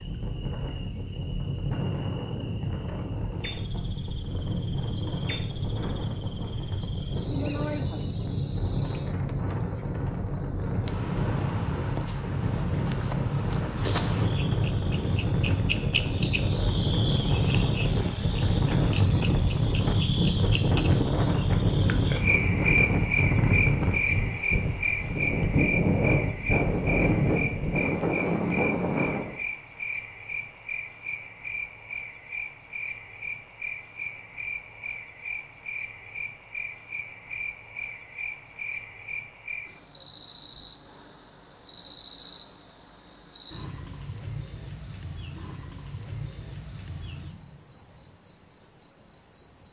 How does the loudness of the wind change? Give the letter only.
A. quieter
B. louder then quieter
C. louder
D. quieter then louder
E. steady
C.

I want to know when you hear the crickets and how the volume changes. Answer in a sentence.
You can hear the crickets from 0.0 to 49.6 s, getting louder then quieter.